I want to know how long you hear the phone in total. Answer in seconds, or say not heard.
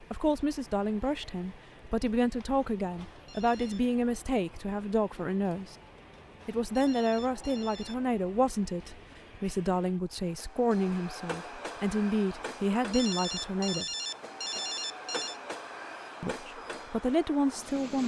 4 s.